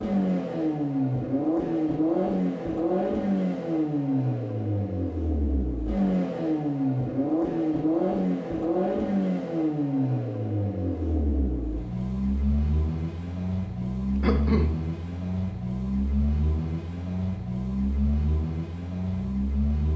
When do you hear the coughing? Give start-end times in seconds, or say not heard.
13.8-14.8.